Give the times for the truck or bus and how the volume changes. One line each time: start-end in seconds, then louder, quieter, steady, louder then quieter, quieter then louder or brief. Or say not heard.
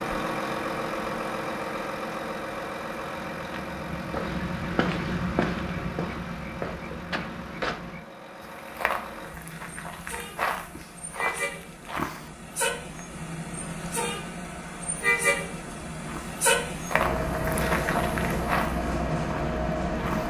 0.0-20.2 quieter then louder.